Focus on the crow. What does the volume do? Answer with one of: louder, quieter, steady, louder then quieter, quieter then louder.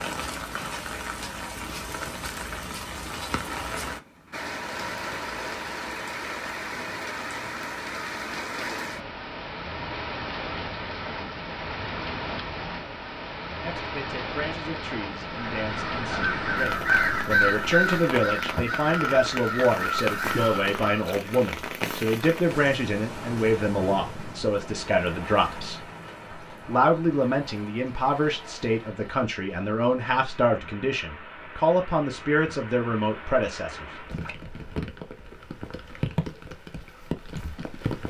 louder then quieter.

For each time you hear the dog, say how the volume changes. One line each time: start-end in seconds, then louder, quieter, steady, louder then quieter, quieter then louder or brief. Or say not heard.
not heard.